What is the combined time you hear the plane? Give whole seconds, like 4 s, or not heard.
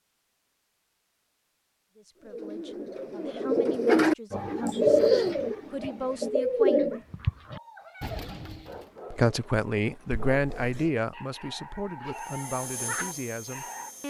2 s.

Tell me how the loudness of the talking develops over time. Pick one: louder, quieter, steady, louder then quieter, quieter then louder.
louder then quieter.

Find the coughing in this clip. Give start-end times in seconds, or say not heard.
4.7-5.3, 10.1-10.9.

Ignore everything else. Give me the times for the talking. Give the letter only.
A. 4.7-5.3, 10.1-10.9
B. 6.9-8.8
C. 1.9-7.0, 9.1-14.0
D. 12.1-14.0
C.